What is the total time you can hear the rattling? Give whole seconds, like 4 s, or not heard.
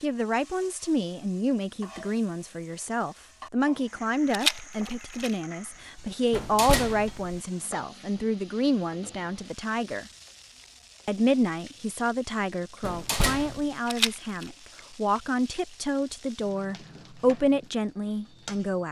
2 s.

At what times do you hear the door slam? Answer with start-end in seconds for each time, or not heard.
6.3-7.4, 12.8-13.7.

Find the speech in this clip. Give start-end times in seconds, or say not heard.
0.0-10.1, 11.1-18.8.